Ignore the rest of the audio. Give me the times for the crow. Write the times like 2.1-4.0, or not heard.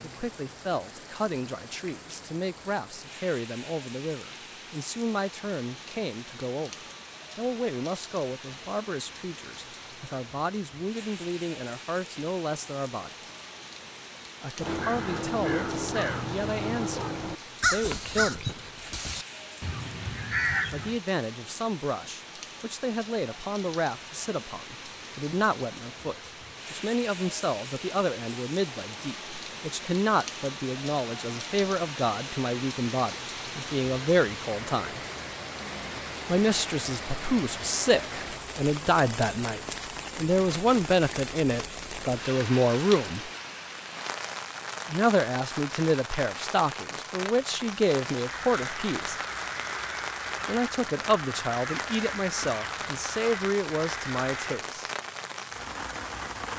14.6-21.0, 48.2-54.6.